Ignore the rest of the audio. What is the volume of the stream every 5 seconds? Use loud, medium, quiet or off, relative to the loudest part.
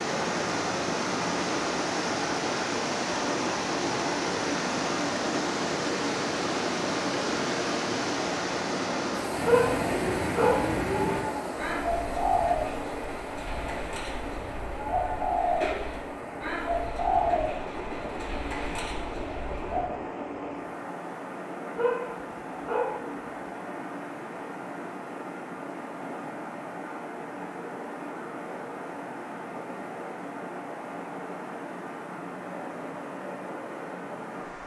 loud, loud, medium, medium, medium, medium, medium.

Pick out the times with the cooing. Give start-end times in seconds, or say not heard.
9.3-19.9.